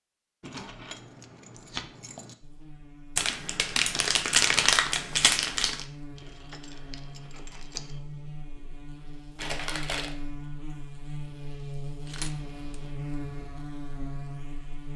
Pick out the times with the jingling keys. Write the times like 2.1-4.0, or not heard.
0.4-2.4, 6.2-8.0, 12.1-12.8.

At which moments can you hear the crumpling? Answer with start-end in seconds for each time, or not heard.
3.1-5.8, 9.3-10.2.